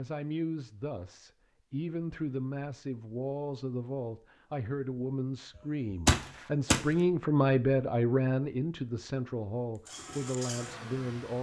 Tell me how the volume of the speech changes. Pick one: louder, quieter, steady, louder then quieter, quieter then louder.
louder then quieter.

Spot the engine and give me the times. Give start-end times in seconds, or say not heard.
9.8-11.3.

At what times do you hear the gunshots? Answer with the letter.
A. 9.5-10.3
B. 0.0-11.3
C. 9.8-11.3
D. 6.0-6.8
D.